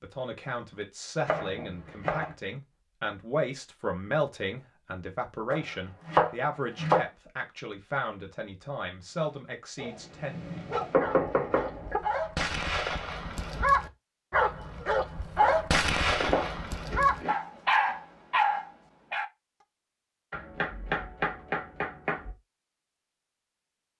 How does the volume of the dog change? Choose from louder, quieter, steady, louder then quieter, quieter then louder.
louder.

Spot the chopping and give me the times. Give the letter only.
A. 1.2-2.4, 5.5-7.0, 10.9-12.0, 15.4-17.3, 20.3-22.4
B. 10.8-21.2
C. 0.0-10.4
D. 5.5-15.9
A.